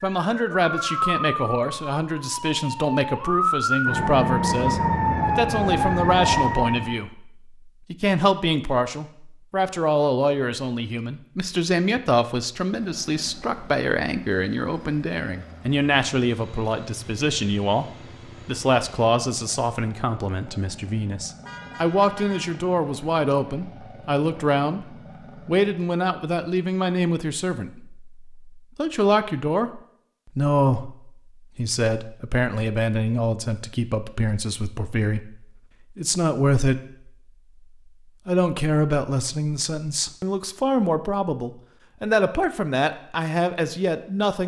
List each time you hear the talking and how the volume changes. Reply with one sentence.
The talking can be heard from 0.0 to 37.1 s, at a steady volume; and from 38.2 to 44.4 s, at a steady volume.